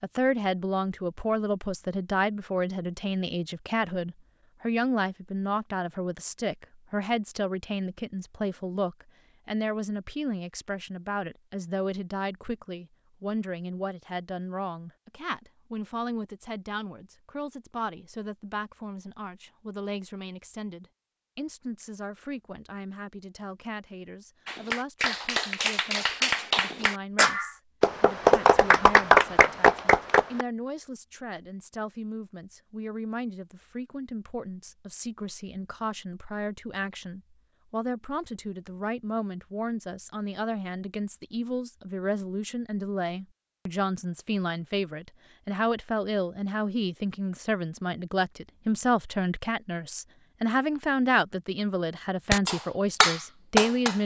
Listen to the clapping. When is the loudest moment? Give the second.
29 s.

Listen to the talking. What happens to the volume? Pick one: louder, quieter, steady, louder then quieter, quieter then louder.
quieter then louder.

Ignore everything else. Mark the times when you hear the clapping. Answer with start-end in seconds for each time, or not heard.
24.4-30.4, 52.3-54.0.